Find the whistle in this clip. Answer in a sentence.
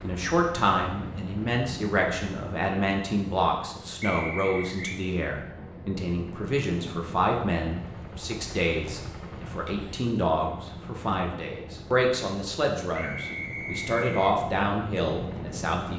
You can hear the whistle from 4.0 to 5.0 s and from 12.9 to 14.3 s.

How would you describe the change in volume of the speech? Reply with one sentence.
The loudness of the speech stays about the same.